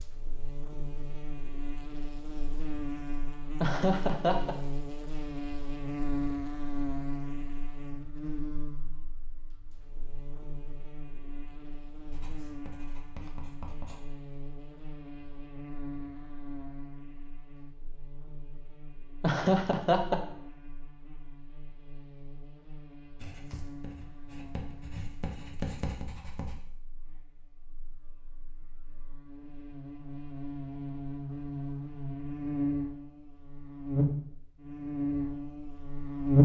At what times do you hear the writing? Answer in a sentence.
You can hear the writing from 12.1 to 14.0 s and from 23.1 to 26.6 s.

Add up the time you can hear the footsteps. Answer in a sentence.
You can't hear the footsteps here.